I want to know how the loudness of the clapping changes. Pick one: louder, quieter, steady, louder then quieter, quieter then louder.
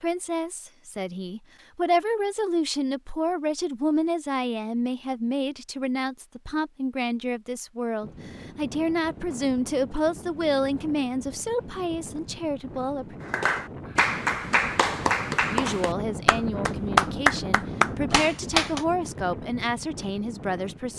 louder then quieter.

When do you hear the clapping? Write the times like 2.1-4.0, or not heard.
13.2-18.9.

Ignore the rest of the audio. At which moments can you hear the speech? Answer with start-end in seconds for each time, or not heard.
0.0-13.2, 15.5-20.9.